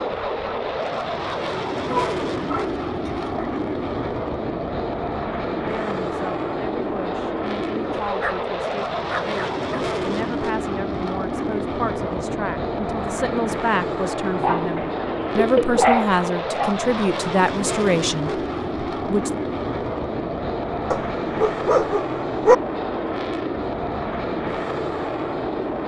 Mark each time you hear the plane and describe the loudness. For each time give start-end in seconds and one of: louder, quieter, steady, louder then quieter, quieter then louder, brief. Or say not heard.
0.0-25.8 steady.